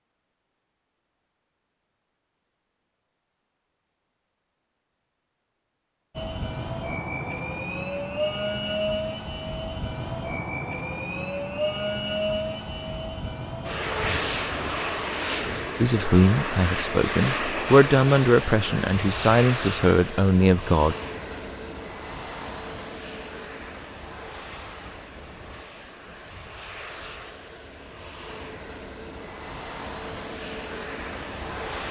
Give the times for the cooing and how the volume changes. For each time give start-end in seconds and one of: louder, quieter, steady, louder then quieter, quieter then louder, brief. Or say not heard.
not heard.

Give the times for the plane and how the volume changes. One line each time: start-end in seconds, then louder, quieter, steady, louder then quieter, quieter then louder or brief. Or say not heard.
6.2-31.8 quieter.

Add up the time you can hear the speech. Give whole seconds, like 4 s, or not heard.
5 s.